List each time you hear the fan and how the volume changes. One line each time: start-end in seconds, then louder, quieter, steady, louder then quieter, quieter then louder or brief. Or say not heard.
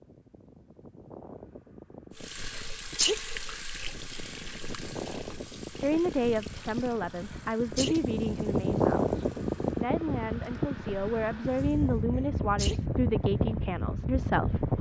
0.0-14.7 louder.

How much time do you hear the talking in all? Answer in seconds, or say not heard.
9 s.